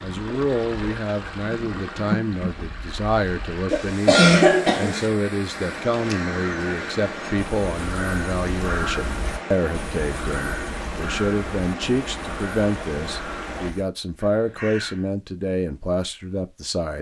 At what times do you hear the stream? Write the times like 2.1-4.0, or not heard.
0.0-13.8.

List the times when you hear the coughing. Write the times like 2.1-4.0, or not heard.
3.7-5.0.